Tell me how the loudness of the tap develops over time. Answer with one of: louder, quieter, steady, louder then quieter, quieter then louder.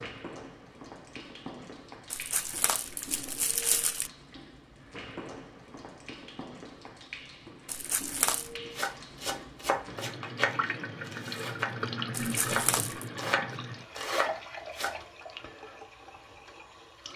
louder then quieter.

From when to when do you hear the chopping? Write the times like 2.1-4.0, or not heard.
8.8-14.9.